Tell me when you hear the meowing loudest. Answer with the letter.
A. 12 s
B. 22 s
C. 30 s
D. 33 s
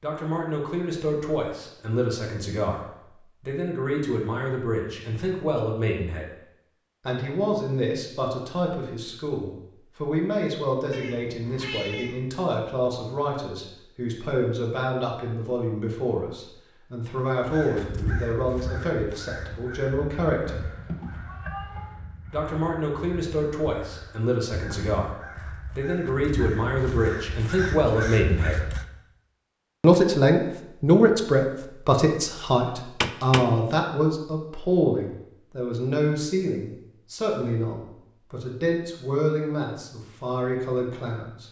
D.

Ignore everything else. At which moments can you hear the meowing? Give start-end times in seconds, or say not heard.
10.9-12.2, 20.6-22.1, 33.0-33.5.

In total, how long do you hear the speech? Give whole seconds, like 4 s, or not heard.
38 s.